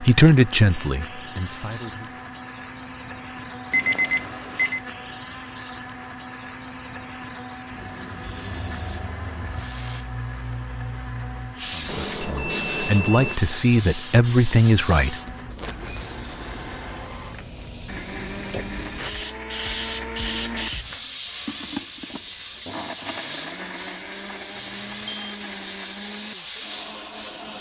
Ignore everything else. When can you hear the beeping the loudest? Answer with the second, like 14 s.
4 s.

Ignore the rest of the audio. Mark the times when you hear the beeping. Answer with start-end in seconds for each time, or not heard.
3.7-4.8, 11.8-13.4, 24.6-25.4.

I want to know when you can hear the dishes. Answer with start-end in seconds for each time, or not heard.
not heard.